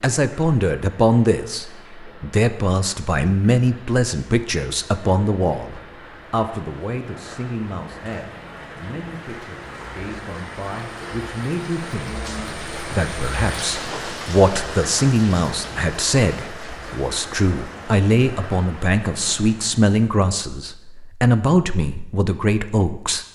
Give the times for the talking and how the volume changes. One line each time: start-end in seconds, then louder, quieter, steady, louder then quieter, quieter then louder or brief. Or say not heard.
0.0-23.2 quieter then louder.